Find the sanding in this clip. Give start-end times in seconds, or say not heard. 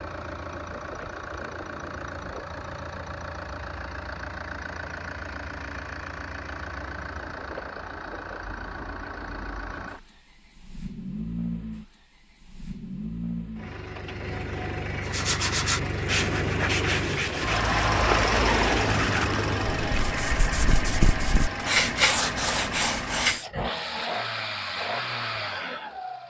15.1-23.4.